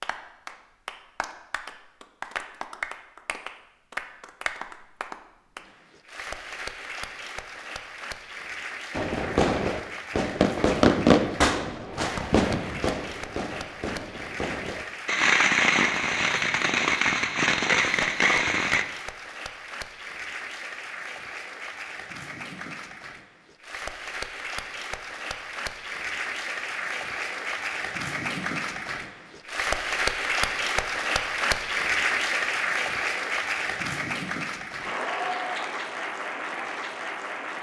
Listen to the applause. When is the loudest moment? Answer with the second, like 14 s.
32 s.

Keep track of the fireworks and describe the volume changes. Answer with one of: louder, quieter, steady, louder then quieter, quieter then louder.
quieter then louder.